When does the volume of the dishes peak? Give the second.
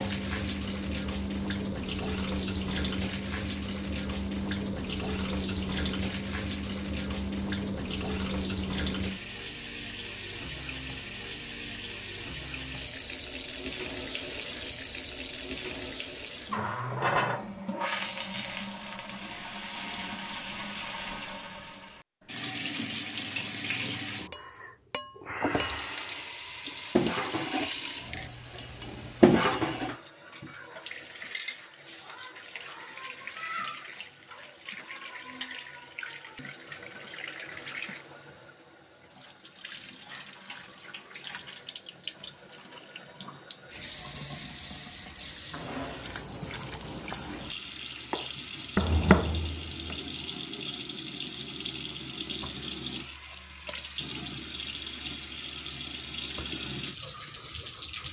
29 s.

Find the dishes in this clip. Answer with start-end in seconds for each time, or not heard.
24.3-29.9.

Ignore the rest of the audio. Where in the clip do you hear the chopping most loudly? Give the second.
49 s.